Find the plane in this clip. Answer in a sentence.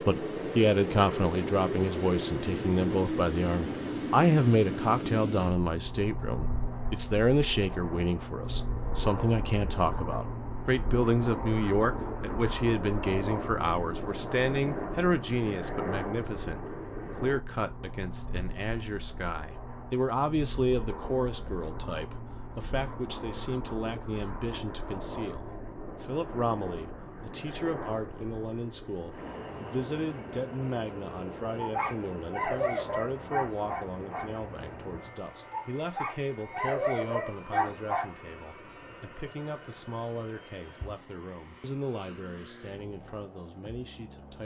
The plane can be heard from 0.0 to 44.4 s.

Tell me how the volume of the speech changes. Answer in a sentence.
The loudness of the speech goes down.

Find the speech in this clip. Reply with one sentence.
You can hear the speech from 0.1 to 44.4 s.